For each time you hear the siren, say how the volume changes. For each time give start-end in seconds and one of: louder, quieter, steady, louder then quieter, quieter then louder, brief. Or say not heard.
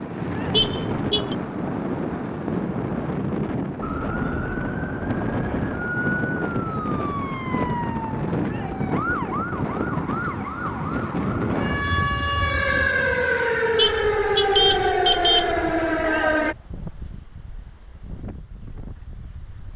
3.8-16.6 louder.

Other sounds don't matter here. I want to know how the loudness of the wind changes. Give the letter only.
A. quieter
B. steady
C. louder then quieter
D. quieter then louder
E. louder
A.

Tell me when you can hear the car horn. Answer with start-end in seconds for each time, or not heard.
0.5-1.4, 13.8-15.6.